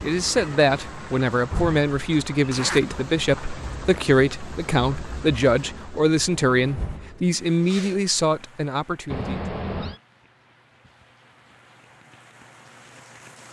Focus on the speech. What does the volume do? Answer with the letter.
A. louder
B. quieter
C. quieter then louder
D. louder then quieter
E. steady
E.